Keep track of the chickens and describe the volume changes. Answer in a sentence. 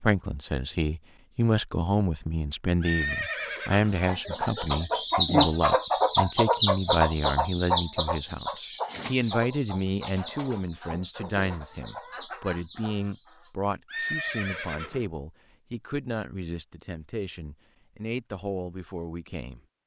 The loudness of the chickens goes down.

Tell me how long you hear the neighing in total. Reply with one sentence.
The neighing can be heard for 2 seconds in total.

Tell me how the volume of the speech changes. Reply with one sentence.
The volume of the speech goes down.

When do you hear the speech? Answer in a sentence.
The speech can be heard from 0.0 to 19.6 s.